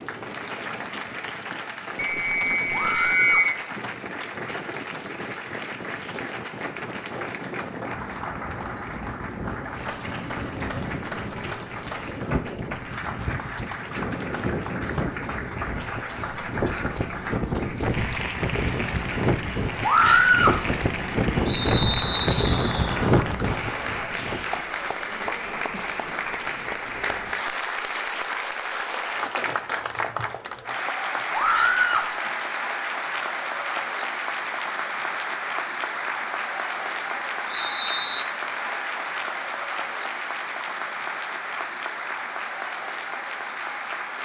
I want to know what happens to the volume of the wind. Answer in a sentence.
The loudness of the wind goes up.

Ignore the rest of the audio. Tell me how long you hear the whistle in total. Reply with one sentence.
The whistle can be heard for 4 seconds in total.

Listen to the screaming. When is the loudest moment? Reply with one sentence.
The loudest moment of the screaming is at 20 seconds.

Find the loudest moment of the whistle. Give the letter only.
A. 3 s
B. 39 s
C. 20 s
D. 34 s
A.